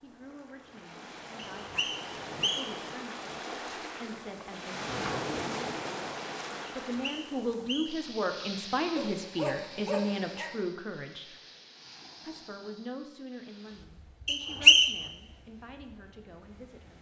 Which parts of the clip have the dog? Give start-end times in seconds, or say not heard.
8.9-10.5.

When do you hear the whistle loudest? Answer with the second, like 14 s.
15 s.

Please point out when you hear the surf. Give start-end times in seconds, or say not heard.
0.0-16.9.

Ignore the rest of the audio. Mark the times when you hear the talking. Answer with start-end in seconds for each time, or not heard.
0.0-4.9, 6.7-11.3, 12.2-16.9.